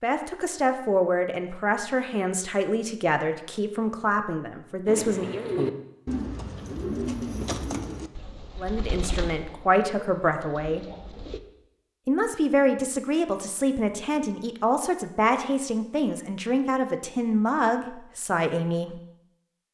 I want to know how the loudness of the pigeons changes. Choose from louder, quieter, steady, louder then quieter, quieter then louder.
quieter.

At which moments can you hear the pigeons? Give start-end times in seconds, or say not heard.
4.8-11.4.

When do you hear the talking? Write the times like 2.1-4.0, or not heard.
0.0-5.5, 8.6-10.8, 12.1-19.0.